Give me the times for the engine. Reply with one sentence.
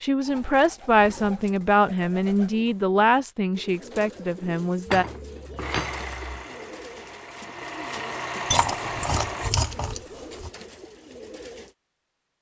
The engine can be heard from 5.6 to 9.6 s.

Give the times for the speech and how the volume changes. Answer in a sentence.
The speech can be heard from 0.0 to 5.0 s, getting quieter.